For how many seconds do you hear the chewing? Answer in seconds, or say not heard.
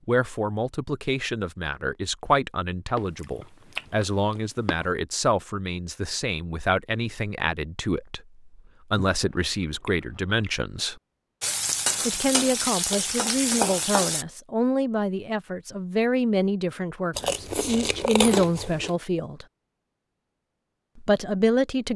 5 s.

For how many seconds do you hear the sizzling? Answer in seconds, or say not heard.
3 s.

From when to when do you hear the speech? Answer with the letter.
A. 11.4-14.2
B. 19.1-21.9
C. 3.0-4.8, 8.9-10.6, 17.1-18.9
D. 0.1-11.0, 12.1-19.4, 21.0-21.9
D.